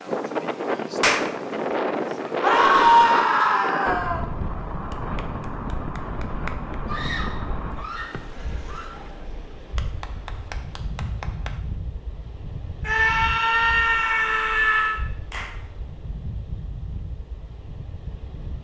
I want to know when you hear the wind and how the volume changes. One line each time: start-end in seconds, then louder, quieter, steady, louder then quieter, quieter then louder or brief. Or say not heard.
0.0-18.5 quieter.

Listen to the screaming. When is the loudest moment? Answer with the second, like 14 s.
3 s.